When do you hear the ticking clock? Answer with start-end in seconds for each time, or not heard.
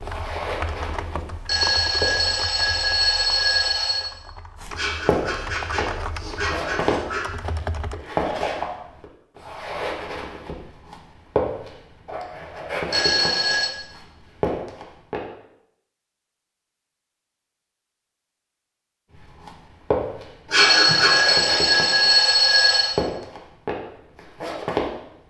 not heard.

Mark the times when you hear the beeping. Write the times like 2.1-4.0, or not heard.
1.4-4.1, 12.9-13.7, 20.6-22.9.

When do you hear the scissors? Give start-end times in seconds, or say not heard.
not heard.